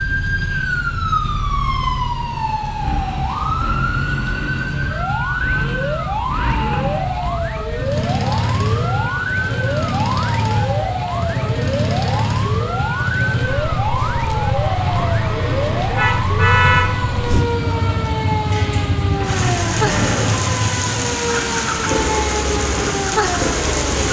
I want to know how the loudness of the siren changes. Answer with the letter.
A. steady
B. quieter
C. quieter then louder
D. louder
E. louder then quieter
A.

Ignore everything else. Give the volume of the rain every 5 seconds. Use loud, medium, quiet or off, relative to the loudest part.
medium, medium, medium, loud, loud.